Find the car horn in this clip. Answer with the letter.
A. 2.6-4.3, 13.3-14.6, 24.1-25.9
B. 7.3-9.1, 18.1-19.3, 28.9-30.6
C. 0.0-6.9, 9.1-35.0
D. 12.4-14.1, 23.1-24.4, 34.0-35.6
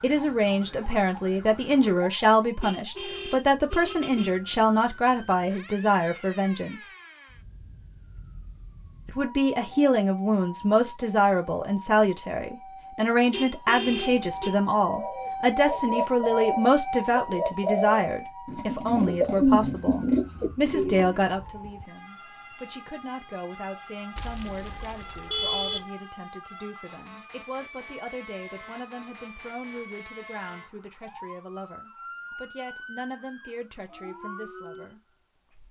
A.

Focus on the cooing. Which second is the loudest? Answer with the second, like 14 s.
19 s.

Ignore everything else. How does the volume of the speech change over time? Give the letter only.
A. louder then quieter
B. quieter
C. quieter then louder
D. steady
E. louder
B.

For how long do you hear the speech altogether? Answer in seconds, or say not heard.
33 s.